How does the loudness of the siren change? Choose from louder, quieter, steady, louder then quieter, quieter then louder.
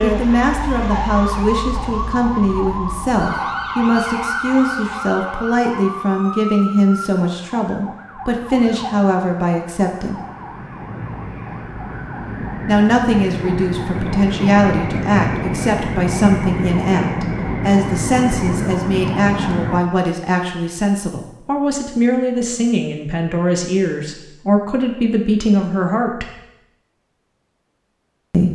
quieter then louder.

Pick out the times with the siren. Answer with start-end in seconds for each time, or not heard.
0.0-19.9.